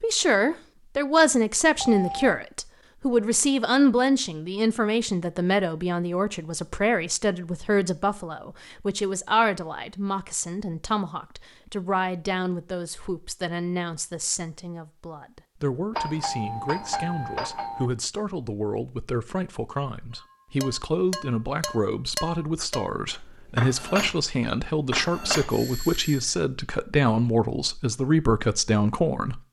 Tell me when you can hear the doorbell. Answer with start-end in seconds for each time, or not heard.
1.8-2.5, 15.9-17.9, 25.5-26.4.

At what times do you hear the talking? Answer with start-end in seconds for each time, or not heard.
0.0-29.4.